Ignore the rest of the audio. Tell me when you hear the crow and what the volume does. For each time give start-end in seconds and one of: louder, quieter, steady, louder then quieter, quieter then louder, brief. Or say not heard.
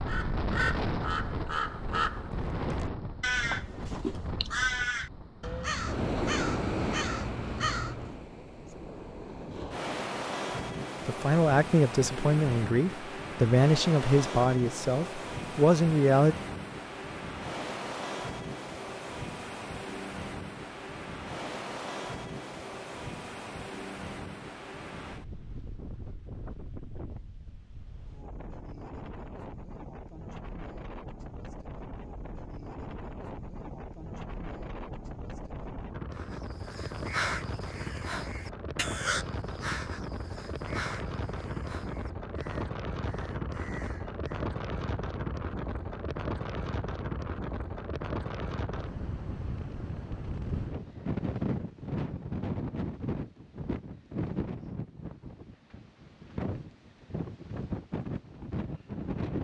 0.1-8.2 steady
36.1-44.5 quieter.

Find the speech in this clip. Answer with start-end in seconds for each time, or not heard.
11.1-16.4.